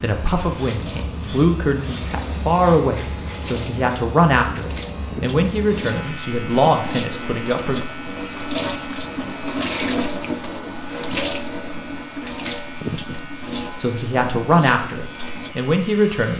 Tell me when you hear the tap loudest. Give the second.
10 s.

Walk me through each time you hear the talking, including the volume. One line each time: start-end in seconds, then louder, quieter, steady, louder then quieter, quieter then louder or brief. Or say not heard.
0.0-7.8 steady
13.8-16.3 brief.